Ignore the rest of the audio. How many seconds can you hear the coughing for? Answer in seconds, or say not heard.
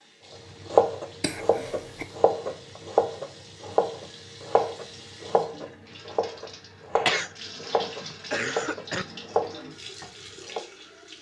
3 s.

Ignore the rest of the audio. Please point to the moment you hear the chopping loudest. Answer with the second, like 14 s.
1 s.